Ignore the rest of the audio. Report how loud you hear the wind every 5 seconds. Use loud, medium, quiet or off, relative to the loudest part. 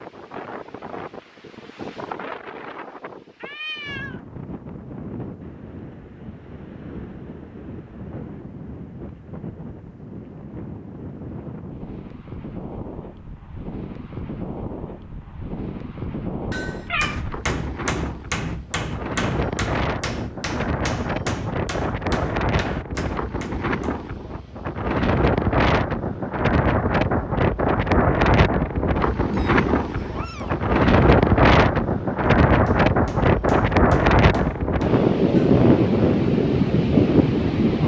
quiet, quiet, quiet, quiet, medium, loud, loud, loud.